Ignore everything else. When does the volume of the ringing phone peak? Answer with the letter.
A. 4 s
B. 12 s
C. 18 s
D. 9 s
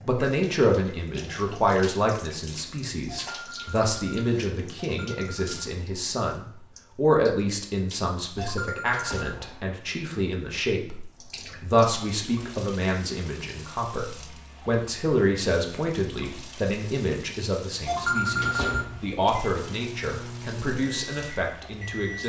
C.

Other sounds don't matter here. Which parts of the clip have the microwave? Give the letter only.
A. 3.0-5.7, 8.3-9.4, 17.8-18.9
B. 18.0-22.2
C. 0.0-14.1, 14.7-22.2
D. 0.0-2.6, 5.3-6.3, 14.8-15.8
B.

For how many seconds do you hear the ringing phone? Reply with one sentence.
The ringing phone can be heard for 5 seconds in total.